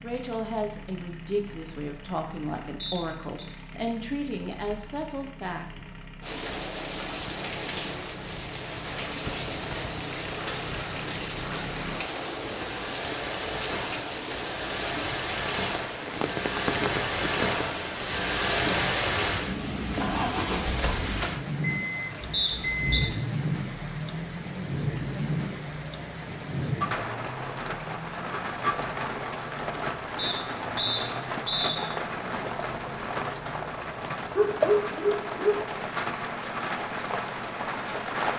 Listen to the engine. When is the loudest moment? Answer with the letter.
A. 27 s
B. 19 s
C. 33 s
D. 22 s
B.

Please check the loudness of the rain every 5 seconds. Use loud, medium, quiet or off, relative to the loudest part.
off, loud, loud, loud, loud, loud, loud, loud.